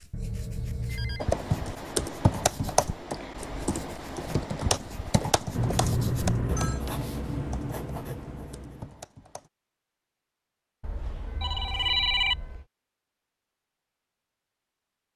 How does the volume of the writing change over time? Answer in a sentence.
The loudness of the writing goes up.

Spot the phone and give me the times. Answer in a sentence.
You can hear the phone from 0.1 to 1.3 s, from 5.5 to 6.8 s and from 10.8 to 12.7 s.